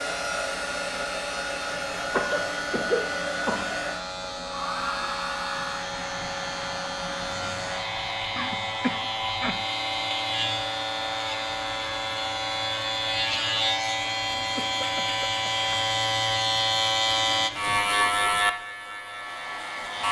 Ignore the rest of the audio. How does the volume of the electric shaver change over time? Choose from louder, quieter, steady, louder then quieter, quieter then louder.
louder.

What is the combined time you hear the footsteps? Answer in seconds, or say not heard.
not heard.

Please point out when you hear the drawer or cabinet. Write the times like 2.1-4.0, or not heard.
not heard.